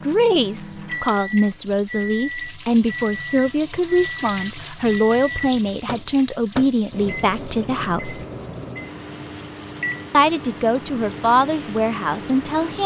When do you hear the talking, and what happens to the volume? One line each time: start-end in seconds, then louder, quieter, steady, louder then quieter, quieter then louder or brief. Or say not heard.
0.0-8.2 steady
10.1-12.8 brief.